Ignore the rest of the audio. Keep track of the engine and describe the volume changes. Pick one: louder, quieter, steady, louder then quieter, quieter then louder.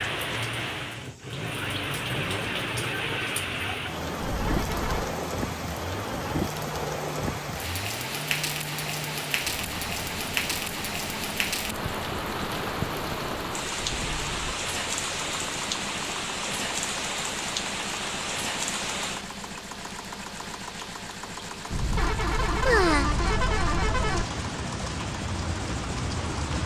steady.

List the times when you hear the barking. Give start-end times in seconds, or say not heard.
not heard.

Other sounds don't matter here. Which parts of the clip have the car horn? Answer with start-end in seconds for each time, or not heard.
4.2-5.2, 13.8-14.6, 21.7-24.2.